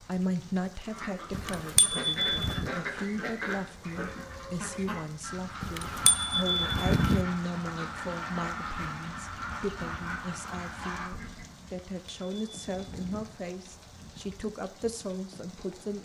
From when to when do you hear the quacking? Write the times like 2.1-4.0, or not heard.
0.8-11.5.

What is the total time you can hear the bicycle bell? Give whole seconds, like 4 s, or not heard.
5 s.